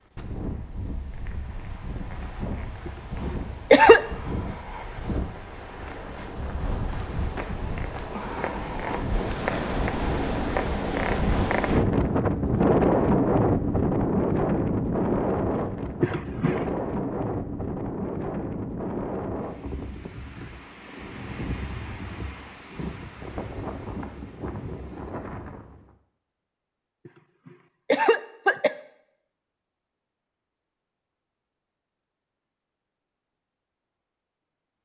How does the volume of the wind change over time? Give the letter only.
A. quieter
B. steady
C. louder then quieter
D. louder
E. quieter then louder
C.